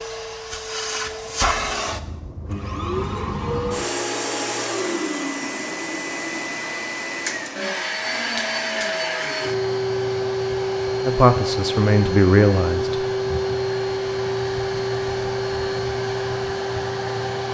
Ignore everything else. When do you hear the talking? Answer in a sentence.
The talking can be heard from 11.0 to 12.9 s.